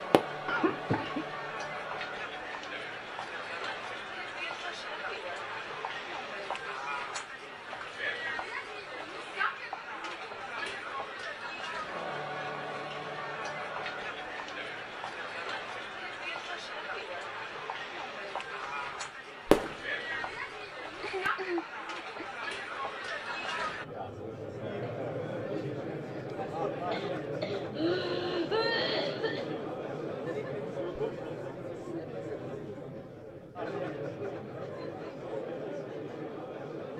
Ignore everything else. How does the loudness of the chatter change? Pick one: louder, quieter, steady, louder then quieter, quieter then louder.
steady.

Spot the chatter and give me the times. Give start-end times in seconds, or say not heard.
0.0-36.9.